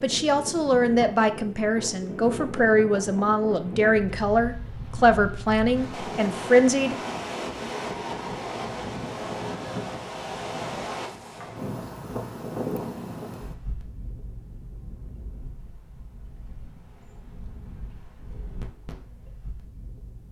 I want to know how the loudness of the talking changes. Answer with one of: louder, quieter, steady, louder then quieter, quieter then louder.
steady.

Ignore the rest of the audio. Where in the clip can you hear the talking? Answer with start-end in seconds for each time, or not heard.
0.0-7.2.